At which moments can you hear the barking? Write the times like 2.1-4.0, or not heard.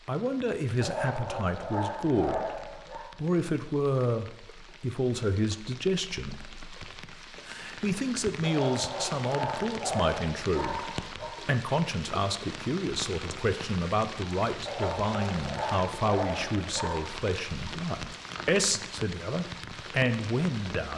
0.8-3.0, 8.4-11.3, 14.7-17.1.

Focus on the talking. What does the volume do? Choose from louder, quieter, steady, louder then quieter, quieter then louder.
steady.